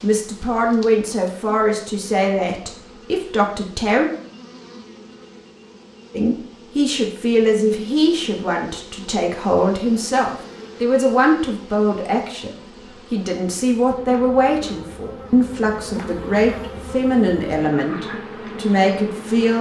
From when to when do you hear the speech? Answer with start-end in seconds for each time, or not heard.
0.0-4.1, 6.1-19.5.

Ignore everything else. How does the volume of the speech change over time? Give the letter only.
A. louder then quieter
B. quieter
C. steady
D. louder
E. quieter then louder
C.